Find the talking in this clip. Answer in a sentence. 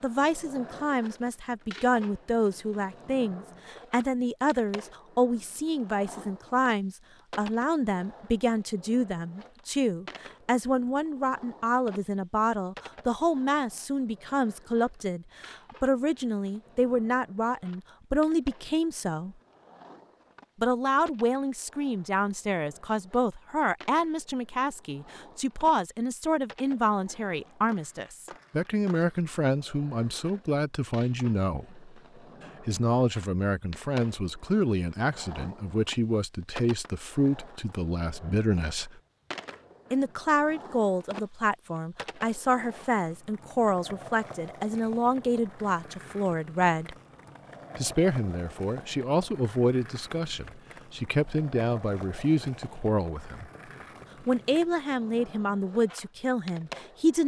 The talking can be heard from 0.0 to 19.4 s, from 20.6 to 31.9 s, from 32.6 to 39.0 s, from 39.9 to 47.0 s, from 47.8 to 53.5 s and from 54.2 to 57.2 s.